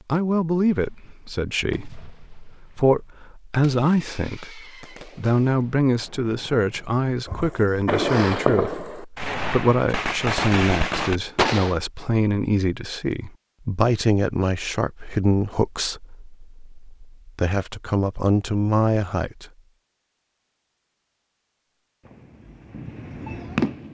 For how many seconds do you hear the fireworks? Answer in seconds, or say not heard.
13 s.